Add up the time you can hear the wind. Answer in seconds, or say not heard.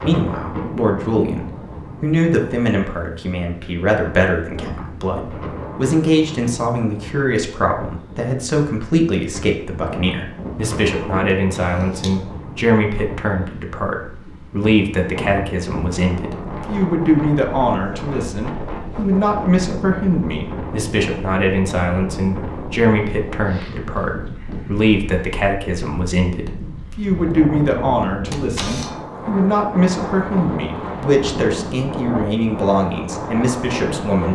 34 s.